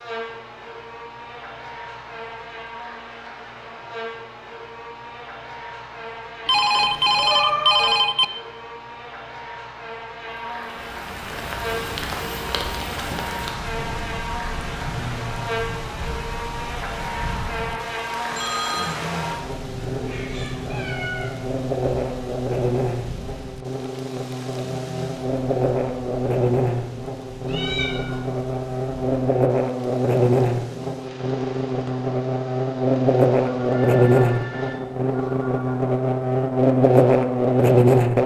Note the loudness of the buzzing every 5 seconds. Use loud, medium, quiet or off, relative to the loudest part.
quiet, quiet, quiet, quiet, medium, medium, loud, loud.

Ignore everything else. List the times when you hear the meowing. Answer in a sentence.
You can hear the meowing from 6.8 to 7.9 s, from 19.7 to 21.4 s and from 27.4 to 28.2 s.